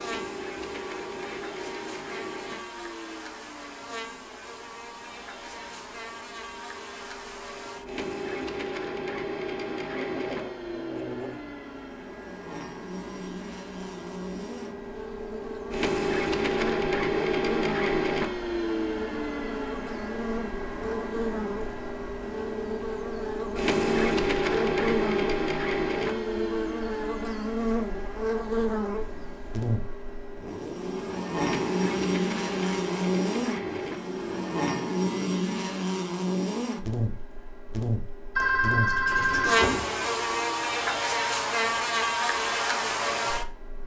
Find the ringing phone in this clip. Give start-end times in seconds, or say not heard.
38.4-40.0.